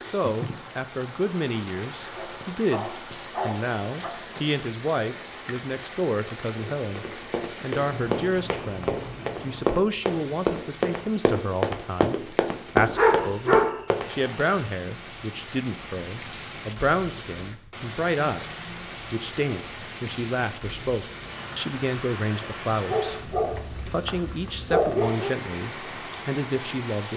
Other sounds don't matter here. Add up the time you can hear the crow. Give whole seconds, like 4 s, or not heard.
not heard.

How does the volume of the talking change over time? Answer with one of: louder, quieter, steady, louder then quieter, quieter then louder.
steady.